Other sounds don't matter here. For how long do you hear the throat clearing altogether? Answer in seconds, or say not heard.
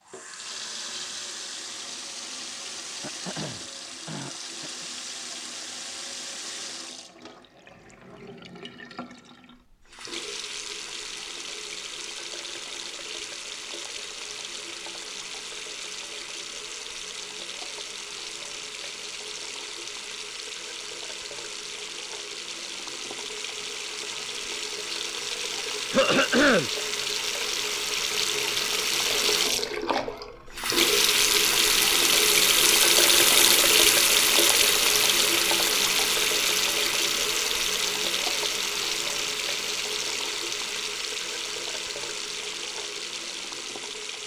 3 s.